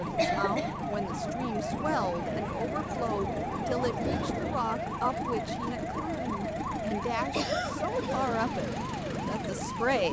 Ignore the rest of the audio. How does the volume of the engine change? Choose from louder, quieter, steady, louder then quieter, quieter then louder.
steady.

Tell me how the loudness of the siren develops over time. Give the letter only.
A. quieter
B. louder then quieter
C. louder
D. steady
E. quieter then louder
D.